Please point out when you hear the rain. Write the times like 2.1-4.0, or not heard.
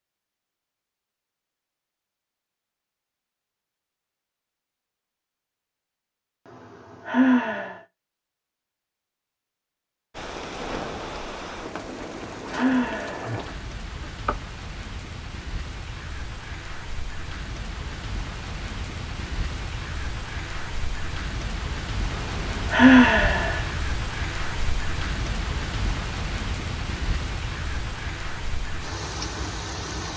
10.1-30.1.